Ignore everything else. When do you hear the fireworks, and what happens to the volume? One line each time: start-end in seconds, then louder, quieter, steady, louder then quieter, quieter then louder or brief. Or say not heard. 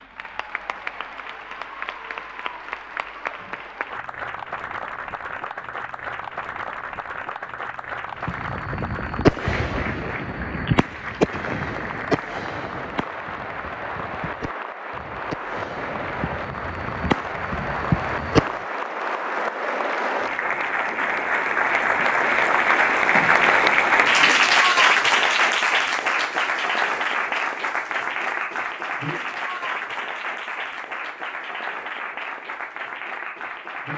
8.2-18.6 quieter then louder.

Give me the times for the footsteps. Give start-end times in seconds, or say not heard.
not heard.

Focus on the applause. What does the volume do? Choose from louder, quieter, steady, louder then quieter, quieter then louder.
louder then quieter.